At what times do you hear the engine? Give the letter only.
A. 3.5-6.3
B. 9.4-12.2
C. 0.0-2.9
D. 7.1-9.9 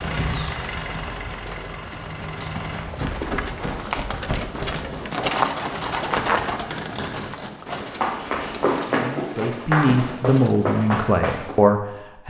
C.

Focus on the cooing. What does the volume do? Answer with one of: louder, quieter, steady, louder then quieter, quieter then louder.
louder then quieter.